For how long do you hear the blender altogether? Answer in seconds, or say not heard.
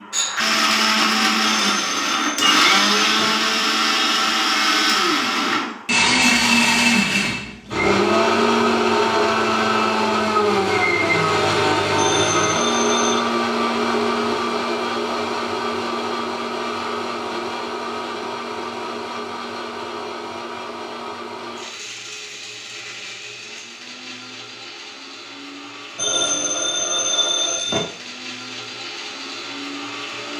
30 s.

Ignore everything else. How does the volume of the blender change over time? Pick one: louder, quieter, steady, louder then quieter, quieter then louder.
quieter.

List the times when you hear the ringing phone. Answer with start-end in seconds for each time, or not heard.
1.4-3.3, 11.9-13.2, 25.9-27.8.